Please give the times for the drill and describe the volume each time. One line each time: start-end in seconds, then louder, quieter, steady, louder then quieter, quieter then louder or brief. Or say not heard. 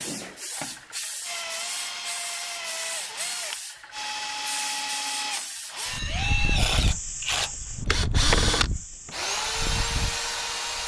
0.0-10.8 louder.